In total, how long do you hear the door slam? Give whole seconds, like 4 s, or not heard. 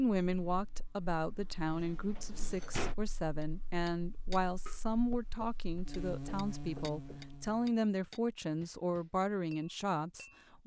2 s.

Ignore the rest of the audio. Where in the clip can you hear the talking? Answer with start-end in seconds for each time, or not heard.
0.0-10.6.